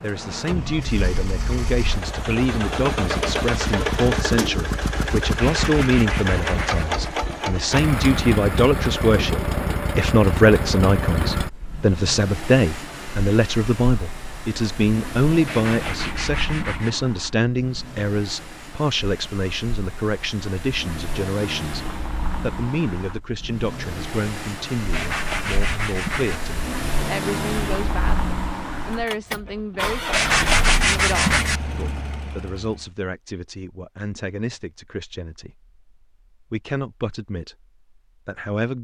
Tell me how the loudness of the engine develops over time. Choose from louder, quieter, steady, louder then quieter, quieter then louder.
quieter then louder.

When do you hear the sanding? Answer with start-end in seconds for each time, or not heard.
5.4-6.8, 15.4-16.9, 24.9-26.4, 30.1-31.6.